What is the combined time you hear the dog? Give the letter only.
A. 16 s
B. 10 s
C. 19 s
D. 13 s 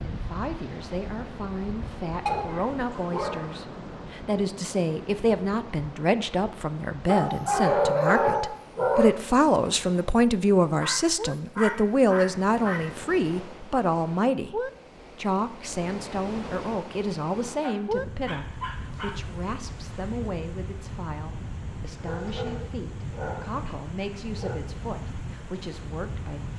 B.